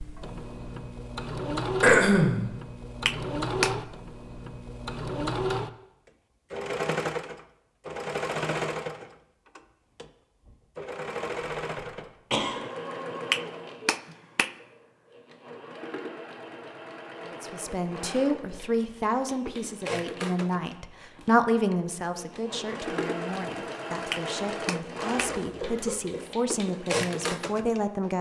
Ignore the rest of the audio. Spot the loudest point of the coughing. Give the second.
2 s.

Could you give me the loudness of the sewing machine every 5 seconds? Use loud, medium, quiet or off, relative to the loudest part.
loud, loud, medium, medium, medium, loud.